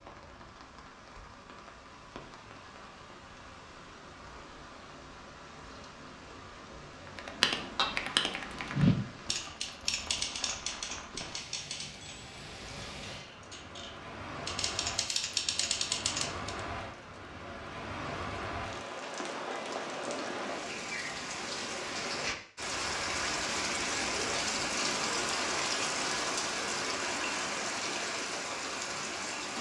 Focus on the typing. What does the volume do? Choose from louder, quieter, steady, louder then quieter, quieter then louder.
quieter then louder.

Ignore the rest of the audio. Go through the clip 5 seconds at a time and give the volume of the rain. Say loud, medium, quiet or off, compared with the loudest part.
quiet, quiet, medium, medium, loud, loud.